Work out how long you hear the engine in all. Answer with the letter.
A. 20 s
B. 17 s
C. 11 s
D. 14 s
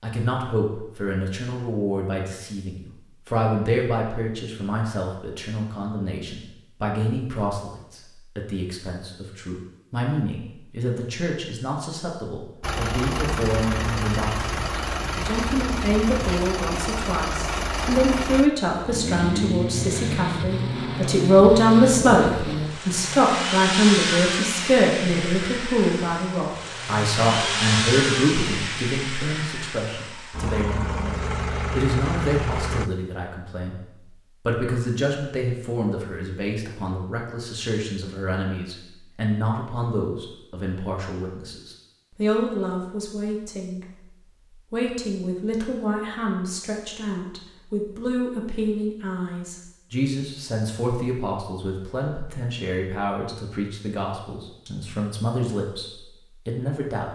A.